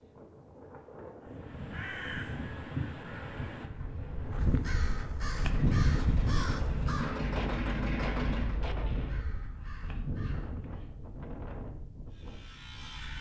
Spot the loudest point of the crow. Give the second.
6 s.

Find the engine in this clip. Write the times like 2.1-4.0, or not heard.
5.3-8.6.